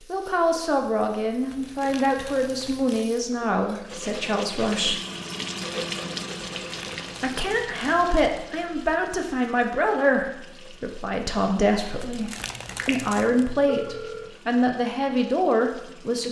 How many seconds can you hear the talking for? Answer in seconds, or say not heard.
14 s.